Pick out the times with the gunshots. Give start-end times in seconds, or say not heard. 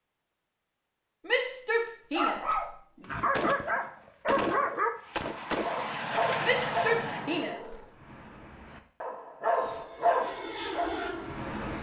3.4-6.4.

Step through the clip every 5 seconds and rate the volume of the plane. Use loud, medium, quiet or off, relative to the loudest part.
off, loud, loud.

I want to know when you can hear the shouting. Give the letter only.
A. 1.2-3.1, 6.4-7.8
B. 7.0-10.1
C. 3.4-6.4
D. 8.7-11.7
A.